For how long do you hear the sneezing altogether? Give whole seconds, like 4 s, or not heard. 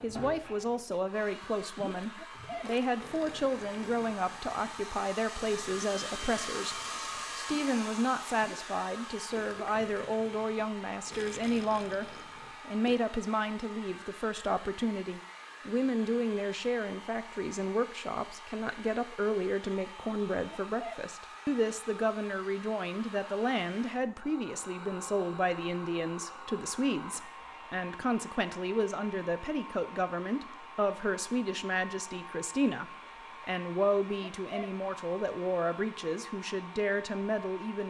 2 s.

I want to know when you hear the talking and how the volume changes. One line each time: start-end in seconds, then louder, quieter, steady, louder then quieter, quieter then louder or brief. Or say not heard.
0.0-37.8 steady.